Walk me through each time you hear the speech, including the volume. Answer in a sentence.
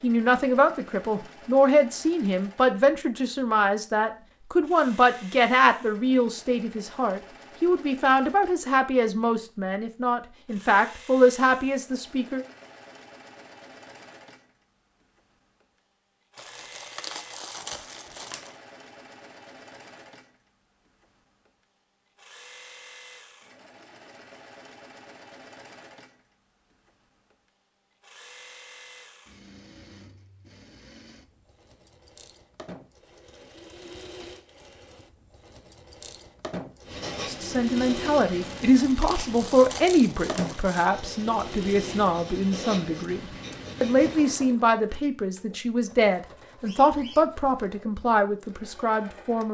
The speech can be heard from 0.0 to 12.4 s, at a steady volume; and from 37.2 to 49.4 s, at a steady volume.